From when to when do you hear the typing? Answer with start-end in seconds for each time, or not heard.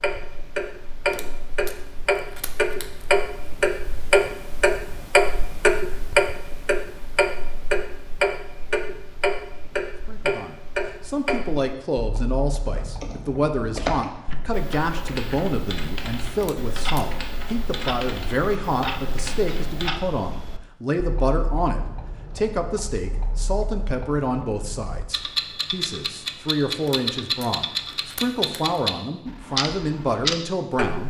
12.7-19.9.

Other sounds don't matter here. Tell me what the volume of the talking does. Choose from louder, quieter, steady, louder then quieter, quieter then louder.
steady.